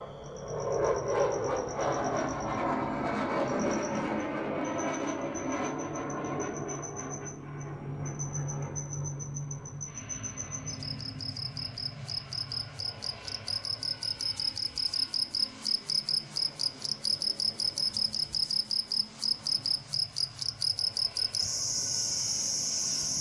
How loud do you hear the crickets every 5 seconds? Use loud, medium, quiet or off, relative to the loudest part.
quiet, quiet, medium, loud, loud.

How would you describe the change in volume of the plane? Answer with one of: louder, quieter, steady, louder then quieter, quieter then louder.
quieter.